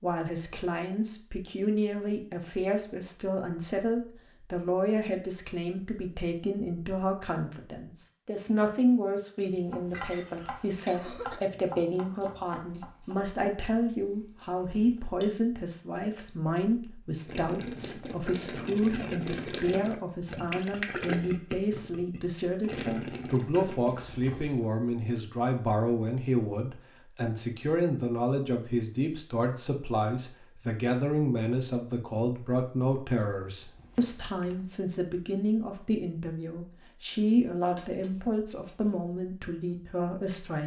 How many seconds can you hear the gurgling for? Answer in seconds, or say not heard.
7 s.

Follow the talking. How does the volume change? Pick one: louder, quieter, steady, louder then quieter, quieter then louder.
steady.